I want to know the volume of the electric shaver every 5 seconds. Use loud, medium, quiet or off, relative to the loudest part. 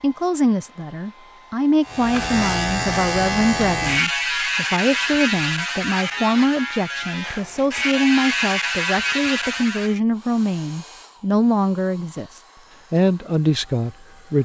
loud, loud, off.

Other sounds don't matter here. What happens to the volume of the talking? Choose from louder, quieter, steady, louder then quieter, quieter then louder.
steady.